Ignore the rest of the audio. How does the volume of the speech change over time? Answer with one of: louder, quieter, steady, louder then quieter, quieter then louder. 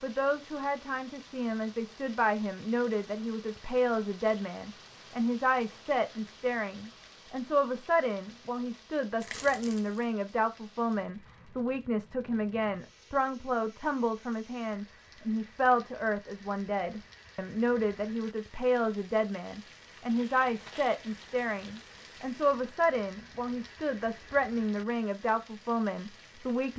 steady.